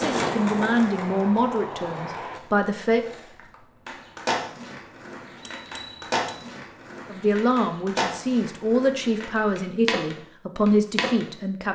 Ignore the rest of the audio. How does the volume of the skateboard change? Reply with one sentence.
The volume of the skateboard stays about the same.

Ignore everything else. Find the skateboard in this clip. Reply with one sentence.
You can hear the skateboard from 0.0 to 11.3 s.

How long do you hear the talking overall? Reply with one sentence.
You can hear the talking for 8 seconds altogether.